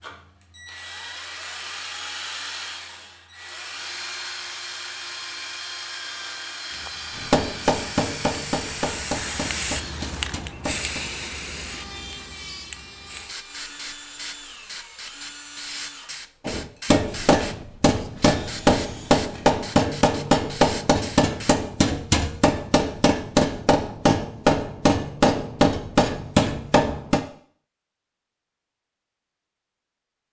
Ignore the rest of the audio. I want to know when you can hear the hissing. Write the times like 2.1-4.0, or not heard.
6.7-21.6.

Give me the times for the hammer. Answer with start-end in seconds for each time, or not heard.
7.2-11.0, 16.4-27.2.